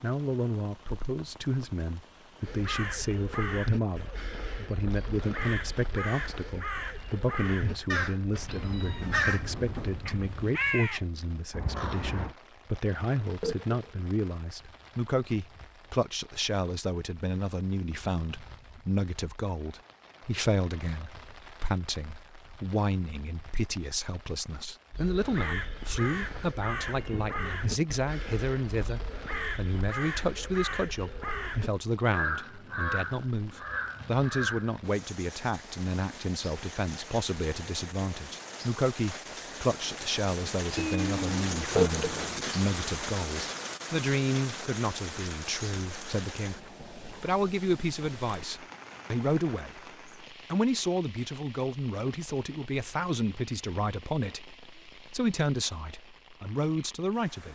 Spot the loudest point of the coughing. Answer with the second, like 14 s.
42 s.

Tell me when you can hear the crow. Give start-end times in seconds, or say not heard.
2.4-12.3, 24.9-34.8.